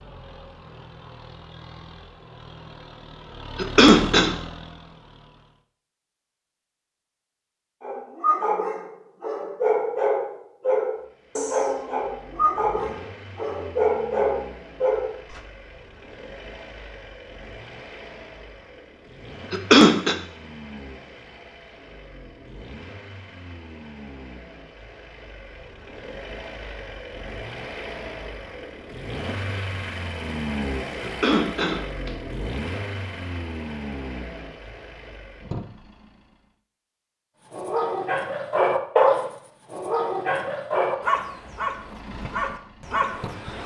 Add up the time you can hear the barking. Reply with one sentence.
You can hear the barking for 14 seconds altogether.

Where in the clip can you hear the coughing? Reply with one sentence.
The coughing can be heard from 3.5 to 4.3 s, from 19.5 to 20.1 s and from 31.0 to 32.1 s.